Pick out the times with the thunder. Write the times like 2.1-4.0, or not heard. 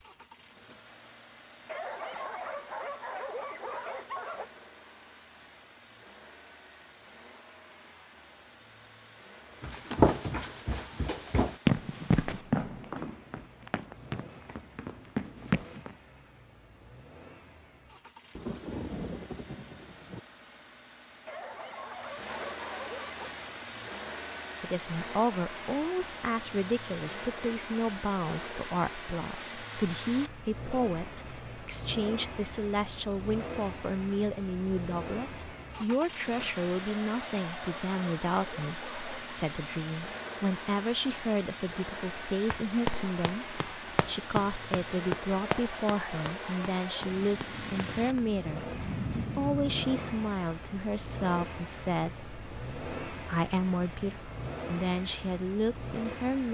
18.4-20.2, 47.0-50.4.